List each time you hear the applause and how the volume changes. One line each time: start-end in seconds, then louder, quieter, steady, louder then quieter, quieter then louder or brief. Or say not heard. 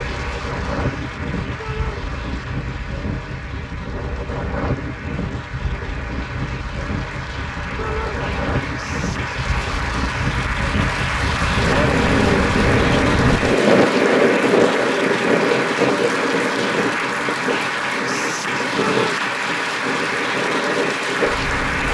0.0-21.8 louder.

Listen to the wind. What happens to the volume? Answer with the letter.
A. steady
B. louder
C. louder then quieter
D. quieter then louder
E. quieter
C.